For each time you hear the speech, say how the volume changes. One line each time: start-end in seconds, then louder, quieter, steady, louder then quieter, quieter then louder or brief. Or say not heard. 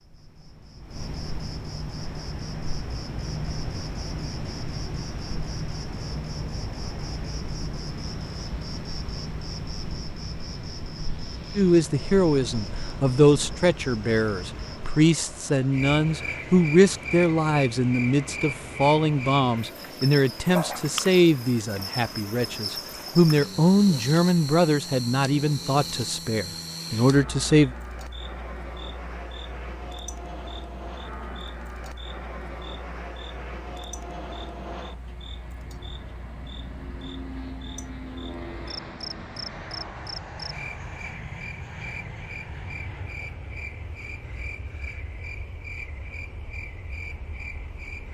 11.6-27.7 steady.